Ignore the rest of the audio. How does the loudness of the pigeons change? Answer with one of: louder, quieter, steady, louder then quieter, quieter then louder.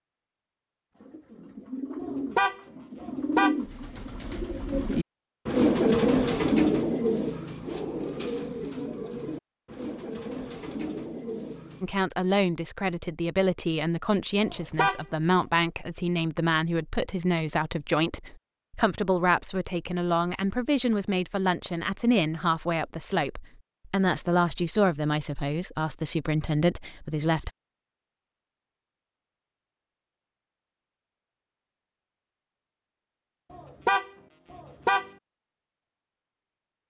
louder then quieter.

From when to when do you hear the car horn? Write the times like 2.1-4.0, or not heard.
2.0-3.5, 14.4-15.1, 33.5-35.1.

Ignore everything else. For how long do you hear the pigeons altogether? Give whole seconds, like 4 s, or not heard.
11 s.